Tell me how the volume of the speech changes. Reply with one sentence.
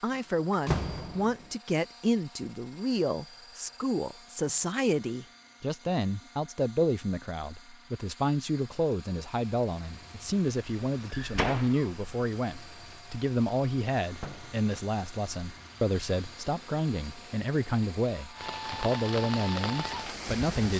The loudness of the speech stays about the same.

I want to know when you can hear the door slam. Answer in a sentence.
The door slam can be heard from 0.1 to 1.4 s, from 11.1 to 11.9 s and from 14.2 to 14.7 s.